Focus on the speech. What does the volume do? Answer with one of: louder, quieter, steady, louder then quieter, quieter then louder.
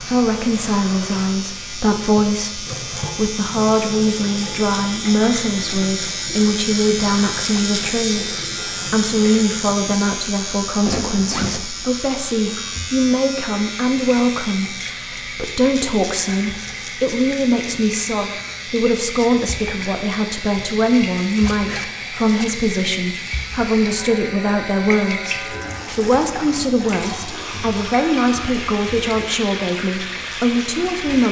steady.